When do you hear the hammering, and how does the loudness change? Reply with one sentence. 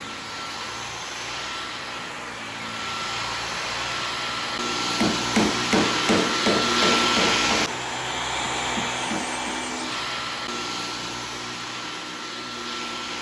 You can hear the hammering from 5.0 to 9.6 s, getting quieter then louder.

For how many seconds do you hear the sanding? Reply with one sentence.
The sanding can't be heard in this clip.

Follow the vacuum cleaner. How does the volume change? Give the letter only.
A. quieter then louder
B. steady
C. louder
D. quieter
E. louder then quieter
E.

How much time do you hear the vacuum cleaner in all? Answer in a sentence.
You can hear the vacuum cleaner for 13 seconds altogether.